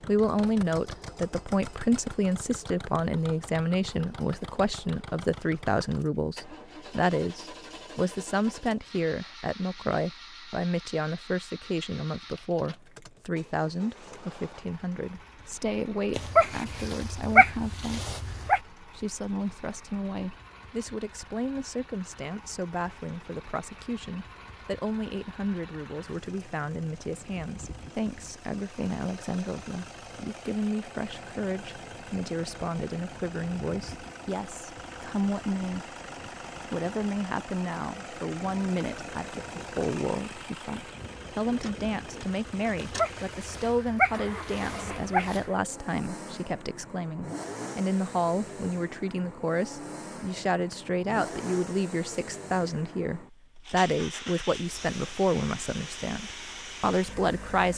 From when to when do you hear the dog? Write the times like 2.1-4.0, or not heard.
16.1-18.6, 42.8-45.5.